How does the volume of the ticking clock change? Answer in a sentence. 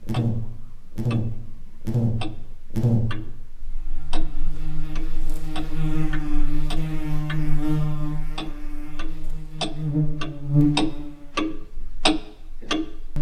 The loudness of the ticking clock goes up.